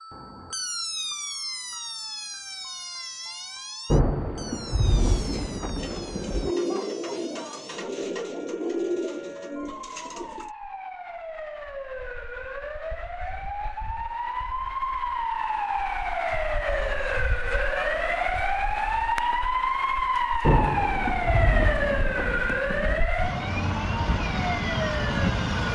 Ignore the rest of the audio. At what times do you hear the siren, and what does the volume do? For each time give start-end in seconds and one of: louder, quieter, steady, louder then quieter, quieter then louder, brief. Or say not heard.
0.0-25.7 quieter then louder.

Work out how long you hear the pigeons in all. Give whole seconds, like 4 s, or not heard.
6 s.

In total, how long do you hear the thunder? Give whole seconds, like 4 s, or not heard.
5 s.